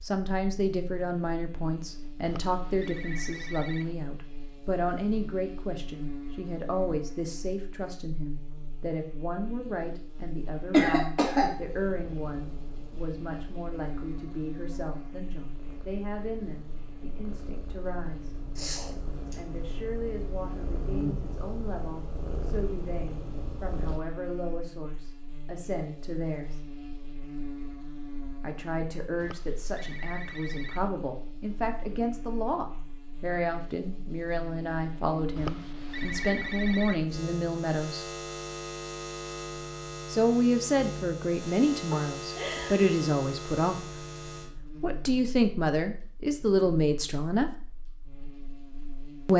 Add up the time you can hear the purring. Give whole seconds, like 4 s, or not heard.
12 s.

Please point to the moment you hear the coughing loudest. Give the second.
11 s.